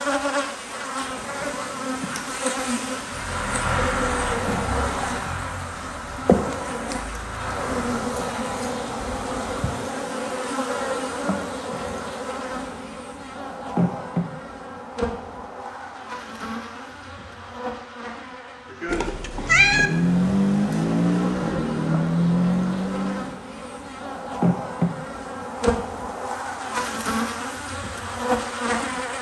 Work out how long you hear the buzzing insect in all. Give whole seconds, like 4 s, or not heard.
29 s.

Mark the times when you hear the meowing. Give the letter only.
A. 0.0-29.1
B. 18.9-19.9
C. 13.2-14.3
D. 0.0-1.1
B.